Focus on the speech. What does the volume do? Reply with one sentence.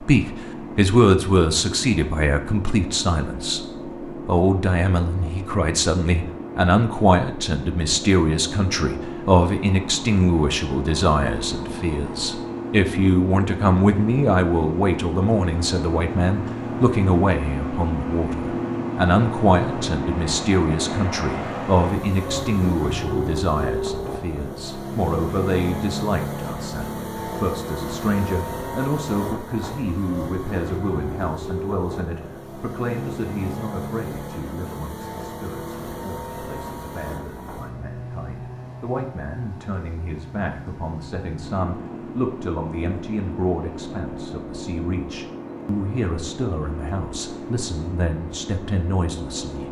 The loudness of the speech goes down.